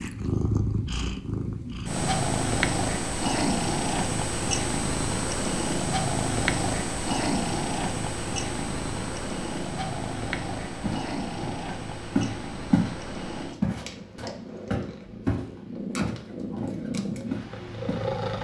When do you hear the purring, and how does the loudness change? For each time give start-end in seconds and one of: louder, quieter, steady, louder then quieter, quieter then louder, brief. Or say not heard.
0.0-18.3 quieter.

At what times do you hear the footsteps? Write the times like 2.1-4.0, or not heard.
10.8-12.9, 13.6-18.1.